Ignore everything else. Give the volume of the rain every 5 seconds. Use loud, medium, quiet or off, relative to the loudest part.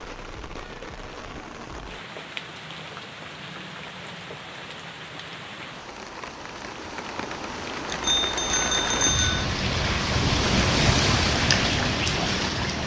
quiet, medium, loud.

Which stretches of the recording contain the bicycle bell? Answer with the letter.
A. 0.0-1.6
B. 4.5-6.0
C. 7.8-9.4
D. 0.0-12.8
C.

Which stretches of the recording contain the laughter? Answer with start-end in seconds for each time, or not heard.
not heard.